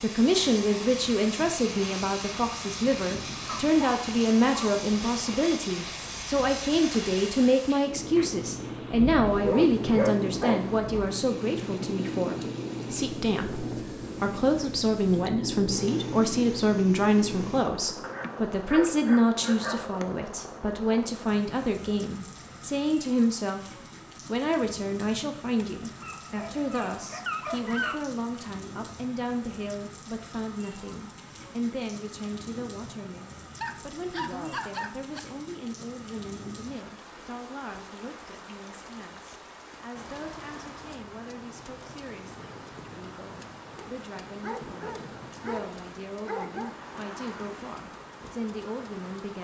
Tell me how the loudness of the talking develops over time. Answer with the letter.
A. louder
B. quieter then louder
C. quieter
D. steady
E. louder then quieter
C.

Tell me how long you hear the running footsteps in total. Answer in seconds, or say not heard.
not heard.